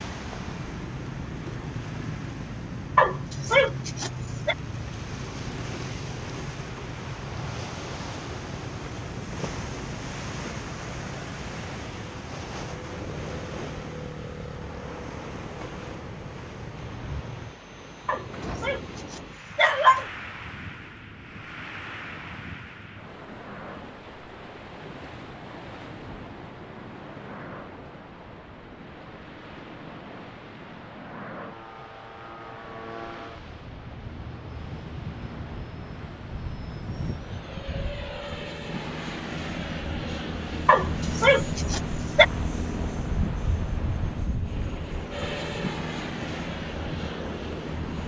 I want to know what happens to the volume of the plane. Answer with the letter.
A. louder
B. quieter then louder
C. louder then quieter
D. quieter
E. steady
A.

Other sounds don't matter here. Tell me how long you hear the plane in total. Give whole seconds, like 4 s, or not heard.
31 s.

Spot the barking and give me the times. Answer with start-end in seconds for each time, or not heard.
3.0-4.5, 18.1-20.1, 40.6-42.2.